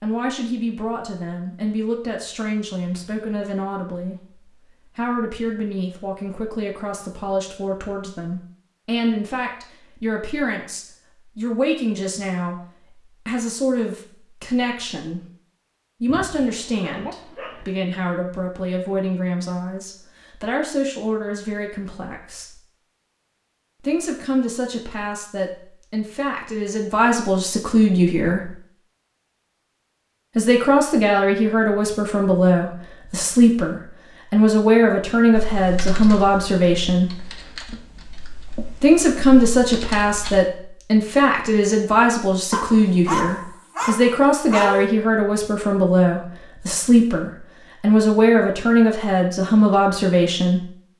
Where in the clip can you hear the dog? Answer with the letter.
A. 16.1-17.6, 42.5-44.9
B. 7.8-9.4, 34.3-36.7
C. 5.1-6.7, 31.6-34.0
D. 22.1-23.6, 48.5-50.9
A.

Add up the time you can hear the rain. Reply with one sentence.
You can't hear the rain here.